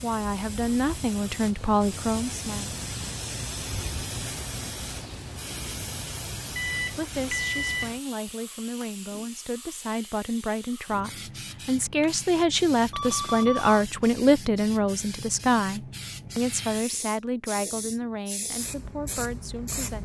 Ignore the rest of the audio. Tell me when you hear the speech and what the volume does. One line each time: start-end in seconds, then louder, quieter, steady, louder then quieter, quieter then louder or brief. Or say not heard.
0.0-2.7 brief
6.9-20.0 louder then quieter.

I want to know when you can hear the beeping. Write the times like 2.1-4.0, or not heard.
6.5-7.9, 12.9-13.8.